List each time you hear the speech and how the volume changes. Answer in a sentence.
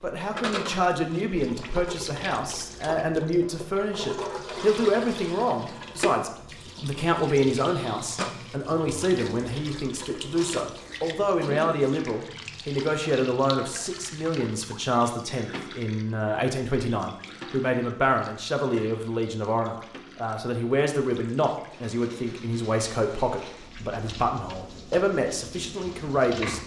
You can hear the speech from 0.0 to 26.6 s, at a steady volume.